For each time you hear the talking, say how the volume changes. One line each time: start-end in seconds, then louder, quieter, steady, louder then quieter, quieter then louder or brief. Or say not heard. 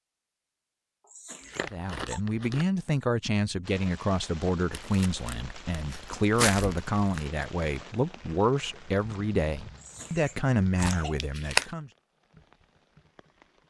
1.6-11.9 steady.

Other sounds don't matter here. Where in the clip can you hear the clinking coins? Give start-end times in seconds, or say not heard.
not heard.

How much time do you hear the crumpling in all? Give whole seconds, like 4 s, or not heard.
5 s.